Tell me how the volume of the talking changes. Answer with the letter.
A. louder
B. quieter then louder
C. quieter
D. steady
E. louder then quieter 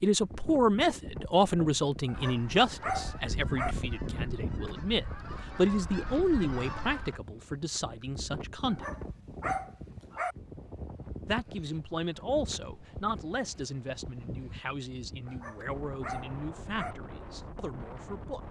C.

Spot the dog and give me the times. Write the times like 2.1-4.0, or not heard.
2.0-3.8, 8.7-10.3, 15.2-16.9.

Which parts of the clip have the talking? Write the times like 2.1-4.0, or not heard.
0.0-8.8, 11.2-18.4.